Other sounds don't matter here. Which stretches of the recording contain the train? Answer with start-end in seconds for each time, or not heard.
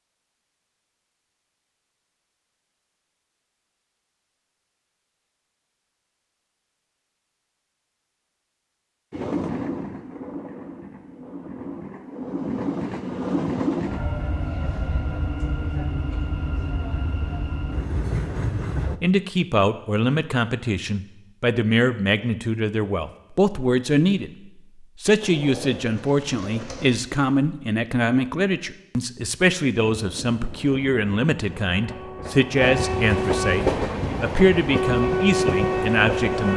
9.1-19.0, 29.8-36.5.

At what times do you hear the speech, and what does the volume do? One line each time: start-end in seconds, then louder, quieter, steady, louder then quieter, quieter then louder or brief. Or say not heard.
19.0-36.5 steady.